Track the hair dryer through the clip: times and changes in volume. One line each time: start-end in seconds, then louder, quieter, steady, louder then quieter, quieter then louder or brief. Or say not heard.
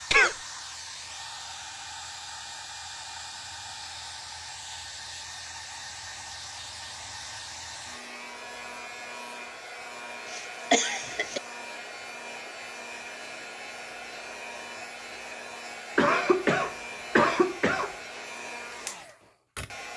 0.0-19.9 steady.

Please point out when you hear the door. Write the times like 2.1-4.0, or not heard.
not heard.